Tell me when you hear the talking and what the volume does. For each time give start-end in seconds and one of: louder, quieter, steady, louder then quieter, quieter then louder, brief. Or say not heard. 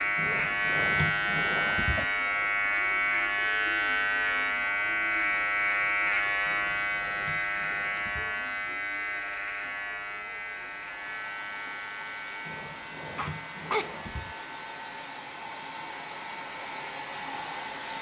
not heard.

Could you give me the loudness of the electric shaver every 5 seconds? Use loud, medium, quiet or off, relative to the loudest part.
loud, loud, quiet, quiet.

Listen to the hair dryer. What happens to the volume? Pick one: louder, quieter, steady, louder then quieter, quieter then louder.
louder.